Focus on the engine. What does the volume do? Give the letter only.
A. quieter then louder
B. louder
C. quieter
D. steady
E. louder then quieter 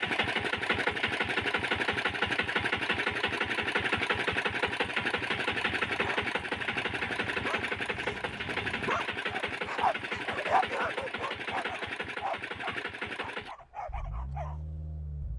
C.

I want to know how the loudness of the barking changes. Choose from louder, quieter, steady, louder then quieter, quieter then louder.
louder then quieter.